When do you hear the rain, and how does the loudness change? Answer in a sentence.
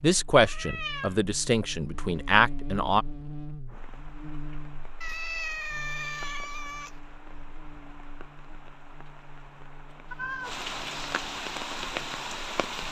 The rain can be heard from 3.6 to 12.8 s, getting louder.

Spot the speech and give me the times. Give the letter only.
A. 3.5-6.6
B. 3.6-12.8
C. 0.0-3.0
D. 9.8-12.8
C.